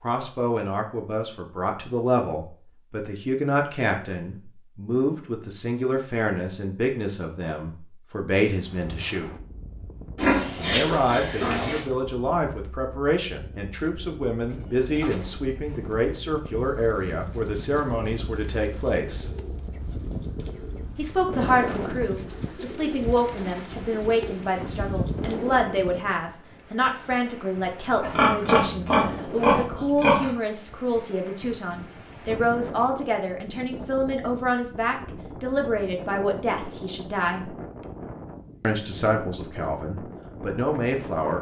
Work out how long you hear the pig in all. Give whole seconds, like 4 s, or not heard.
4 s.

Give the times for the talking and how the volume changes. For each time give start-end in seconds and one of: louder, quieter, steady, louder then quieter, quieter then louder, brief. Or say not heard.
0.0-9.3 steady
10.6-19.2 steady
20.9-37.5 steady
38.6-41.3 brief.